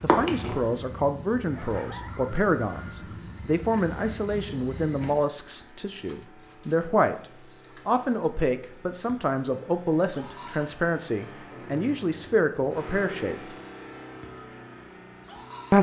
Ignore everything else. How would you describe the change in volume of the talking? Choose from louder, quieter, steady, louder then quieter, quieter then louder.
steady.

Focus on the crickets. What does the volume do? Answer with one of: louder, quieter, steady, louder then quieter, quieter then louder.
louder then quieter.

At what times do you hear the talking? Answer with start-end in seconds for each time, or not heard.
0.0-7.2, 7.8-13.3.